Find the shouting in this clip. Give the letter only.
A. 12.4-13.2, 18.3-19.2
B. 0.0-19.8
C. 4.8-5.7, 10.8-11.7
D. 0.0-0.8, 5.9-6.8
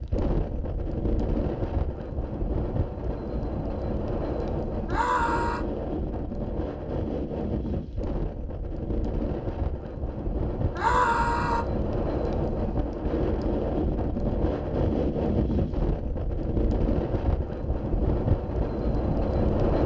C.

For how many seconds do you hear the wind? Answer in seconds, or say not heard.
20 s.